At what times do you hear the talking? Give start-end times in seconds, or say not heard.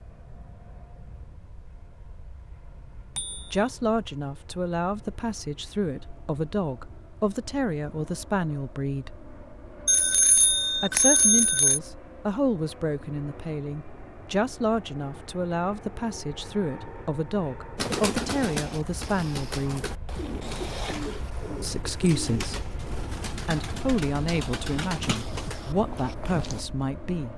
3.5-9.2, 10.8-19.9, 21.6-22.6, 23.4-27.3.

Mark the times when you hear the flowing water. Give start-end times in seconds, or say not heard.
not heard.